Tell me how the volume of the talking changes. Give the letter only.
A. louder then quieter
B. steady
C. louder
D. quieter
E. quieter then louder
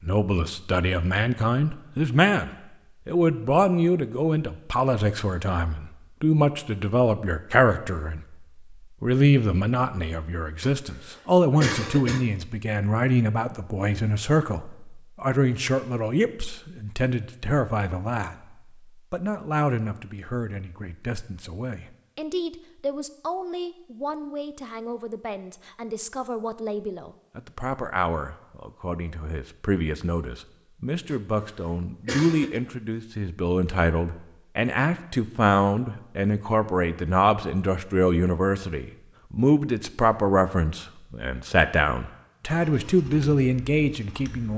E.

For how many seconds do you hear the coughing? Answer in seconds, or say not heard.
3 s.